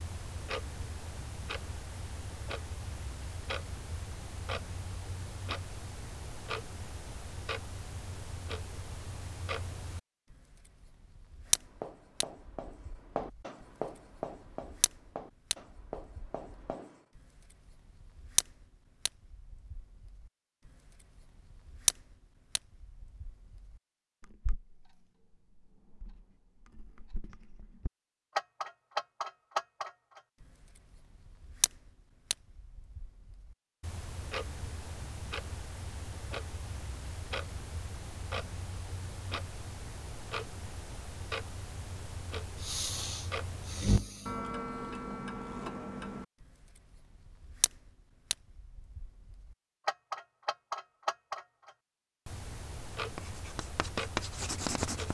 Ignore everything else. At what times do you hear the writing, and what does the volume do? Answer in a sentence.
The writing can be heard from 11.4 to 16.9 s, getting louder then quieter; and briefly from 53.1 to 55.0 s.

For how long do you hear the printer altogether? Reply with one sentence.
The printer can't be heard in this clip.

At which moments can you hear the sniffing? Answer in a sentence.
The sniffing can be heard from 42.6 to 44.5 s.